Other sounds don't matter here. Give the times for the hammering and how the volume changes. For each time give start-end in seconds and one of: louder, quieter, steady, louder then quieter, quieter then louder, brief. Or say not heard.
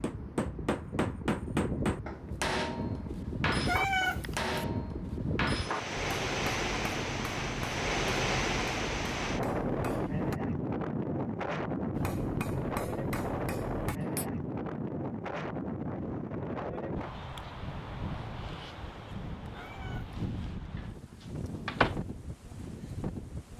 0.0-10.4 quieter
11.9-14.3 brief.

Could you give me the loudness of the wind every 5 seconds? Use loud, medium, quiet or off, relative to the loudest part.
medium, loud, loud, medium, medium.